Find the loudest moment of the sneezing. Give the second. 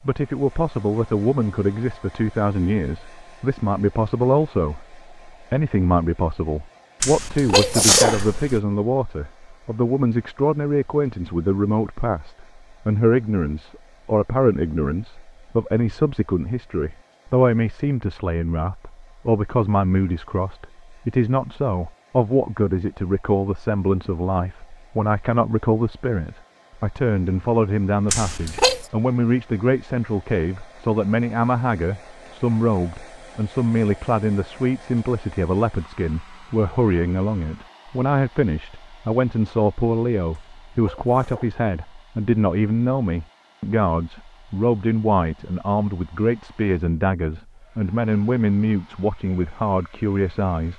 8 s.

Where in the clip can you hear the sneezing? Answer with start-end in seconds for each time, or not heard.
7.0-8.6, 28.1-28.9, 40.3-42.0.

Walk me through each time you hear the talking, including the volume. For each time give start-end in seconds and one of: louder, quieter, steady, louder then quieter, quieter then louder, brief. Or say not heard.
0.0-50.7 steady.